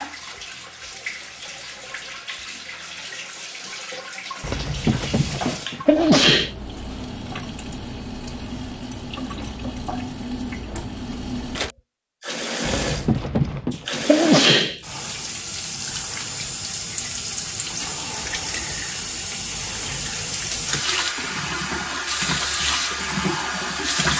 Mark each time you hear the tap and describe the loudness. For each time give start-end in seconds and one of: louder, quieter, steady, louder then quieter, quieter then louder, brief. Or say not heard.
0.0-24.1 louder.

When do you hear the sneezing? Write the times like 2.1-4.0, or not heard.
4.4-6.5, 12.7-14.8.